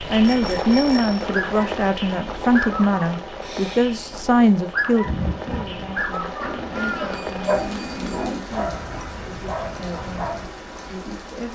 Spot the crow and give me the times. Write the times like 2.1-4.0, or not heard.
5.0-8.6.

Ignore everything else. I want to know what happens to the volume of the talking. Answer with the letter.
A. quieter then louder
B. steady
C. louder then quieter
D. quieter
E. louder
D.